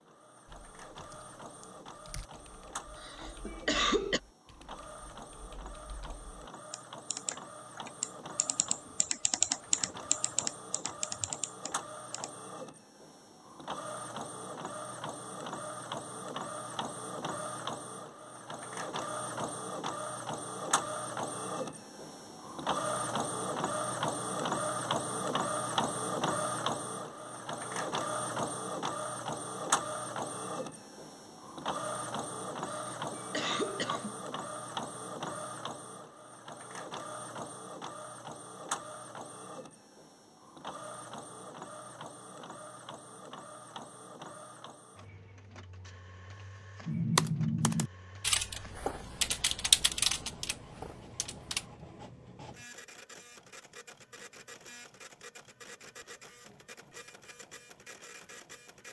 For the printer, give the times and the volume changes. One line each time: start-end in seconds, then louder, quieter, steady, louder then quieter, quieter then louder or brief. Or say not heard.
0.0-58.8 louder then quieter.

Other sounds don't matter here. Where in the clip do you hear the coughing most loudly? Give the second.
4 s.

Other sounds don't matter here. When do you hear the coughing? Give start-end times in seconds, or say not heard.
3.0-4.2, 32.9-34.2.